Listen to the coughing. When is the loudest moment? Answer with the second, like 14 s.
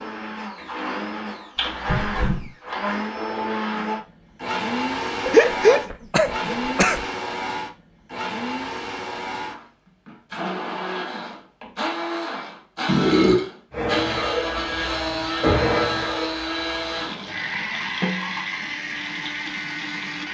6 s.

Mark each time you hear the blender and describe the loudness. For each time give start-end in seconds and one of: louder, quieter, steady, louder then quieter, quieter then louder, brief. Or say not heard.
0.0-20.2 steady.